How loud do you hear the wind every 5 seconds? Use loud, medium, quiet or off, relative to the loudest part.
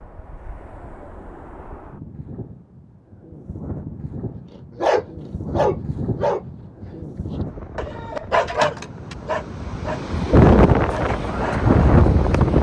quiet, quiet, loud.